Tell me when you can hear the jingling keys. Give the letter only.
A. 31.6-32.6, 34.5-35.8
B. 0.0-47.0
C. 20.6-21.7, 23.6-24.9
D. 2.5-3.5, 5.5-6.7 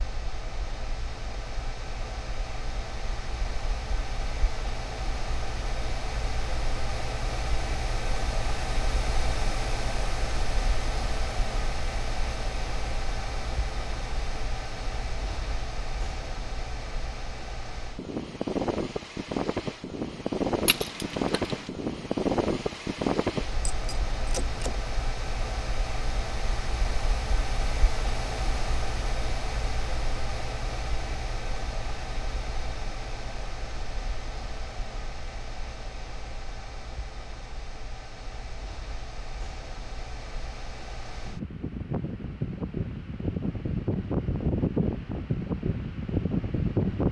C.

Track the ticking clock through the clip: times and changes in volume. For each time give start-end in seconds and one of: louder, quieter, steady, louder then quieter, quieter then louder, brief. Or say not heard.
not heard.